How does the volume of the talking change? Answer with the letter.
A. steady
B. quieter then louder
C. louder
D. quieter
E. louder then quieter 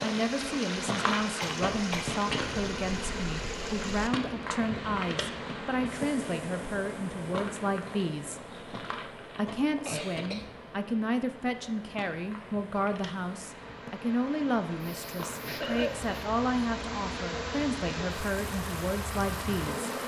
A.